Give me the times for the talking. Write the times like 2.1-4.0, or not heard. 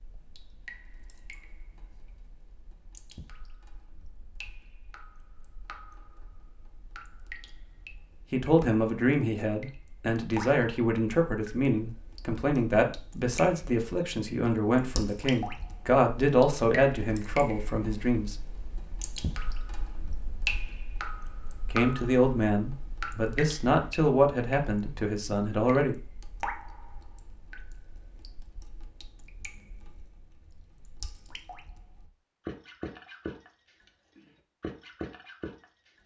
8.3-18.4, 21.7-25.9.